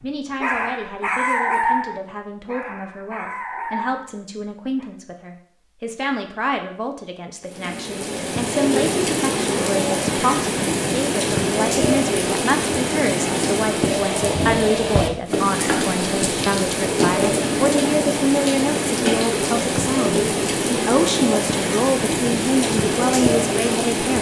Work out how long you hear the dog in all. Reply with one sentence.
You can hear the dog for 5 seconds altogether.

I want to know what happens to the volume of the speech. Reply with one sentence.
The loudness of the speech goes up.